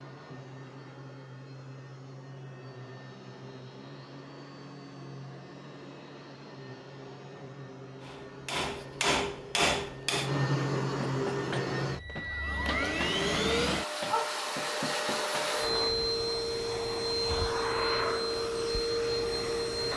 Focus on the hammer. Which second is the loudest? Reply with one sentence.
The loudest moment of the hammer is at 10 seconds.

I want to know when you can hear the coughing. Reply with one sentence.
The coughing can't be heard in this clip.